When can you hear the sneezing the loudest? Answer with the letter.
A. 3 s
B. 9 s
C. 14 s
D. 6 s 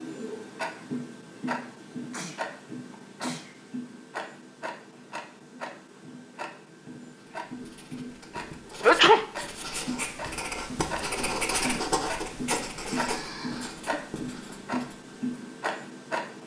B.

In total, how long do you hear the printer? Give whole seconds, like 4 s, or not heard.
not heard.